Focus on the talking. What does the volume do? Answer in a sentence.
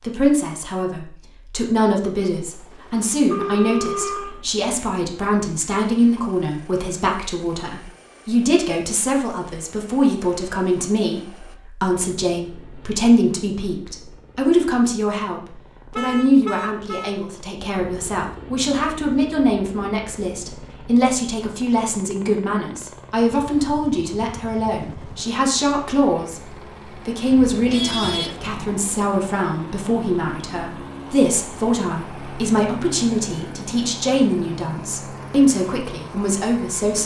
The loudness of the talking stays about the same.